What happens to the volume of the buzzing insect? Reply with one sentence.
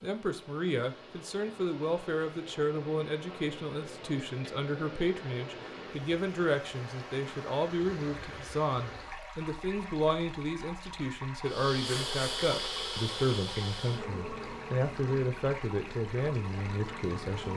The volume of the buzzing insect goes down.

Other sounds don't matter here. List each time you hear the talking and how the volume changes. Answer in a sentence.
The talking can be heard from 0.0 to 17.5 s, at a steady volume.